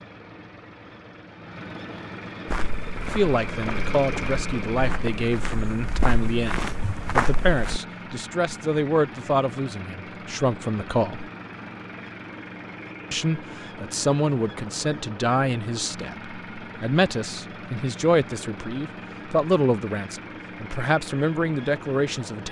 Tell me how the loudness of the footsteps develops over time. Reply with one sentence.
The loudness of the footsteps goes up.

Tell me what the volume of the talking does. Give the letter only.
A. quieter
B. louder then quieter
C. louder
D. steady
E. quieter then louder
D.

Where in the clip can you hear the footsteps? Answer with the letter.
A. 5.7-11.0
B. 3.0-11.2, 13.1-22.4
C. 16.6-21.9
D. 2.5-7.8
D.